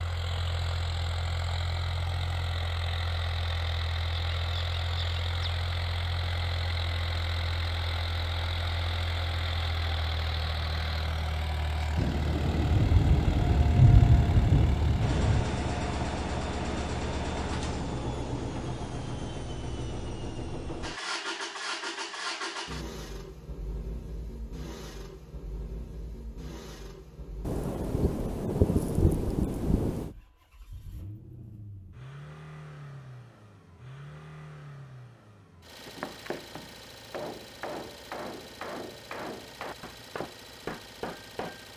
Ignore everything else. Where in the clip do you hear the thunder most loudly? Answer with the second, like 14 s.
14 s.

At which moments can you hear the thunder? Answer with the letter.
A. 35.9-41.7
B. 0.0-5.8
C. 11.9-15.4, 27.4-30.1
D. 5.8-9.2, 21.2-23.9
C.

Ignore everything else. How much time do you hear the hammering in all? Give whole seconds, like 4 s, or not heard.
6 s.